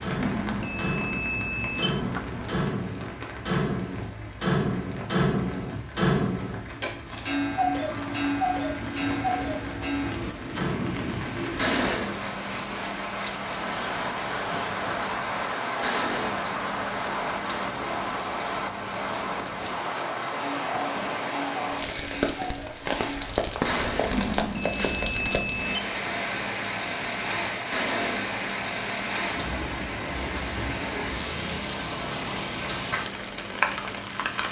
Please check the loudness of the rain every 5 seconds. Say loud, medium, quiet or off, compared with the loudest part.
medium, medium, loud, loud, loud, loud, loud.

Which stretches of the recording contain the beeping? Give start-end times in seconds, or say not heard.
0.1-2.7, 24.1-25.9.